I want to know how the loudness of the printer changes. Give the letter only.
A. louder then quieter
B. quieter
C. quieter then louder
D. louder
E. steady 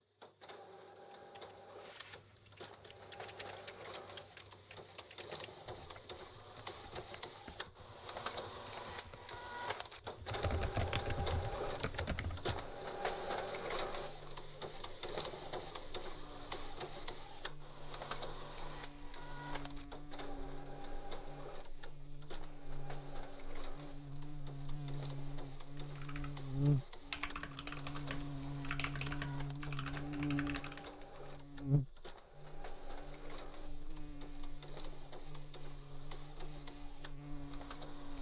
A.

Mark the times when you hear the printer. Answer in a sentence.
You can hear the printer from 0.0 to 38.1 s.